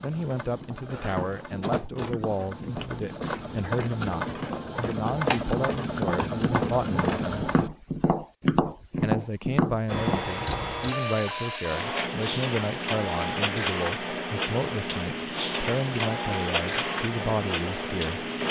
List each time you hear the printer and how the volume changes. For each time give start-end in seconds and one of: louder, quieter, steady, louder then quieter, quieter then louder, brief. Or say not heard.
0.0-7.7 louder
9.8-18.4 steady.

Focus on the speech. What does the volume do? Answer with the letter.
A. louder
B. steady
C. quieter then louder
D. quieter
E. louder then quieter
B.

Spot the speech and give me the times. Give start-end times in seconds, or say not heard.
0.0-7.5, 9.0-18.3.